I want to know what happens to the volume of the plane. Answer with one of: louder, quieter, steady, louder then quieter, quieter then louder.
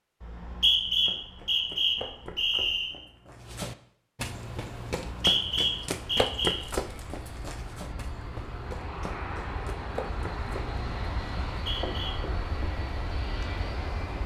louder.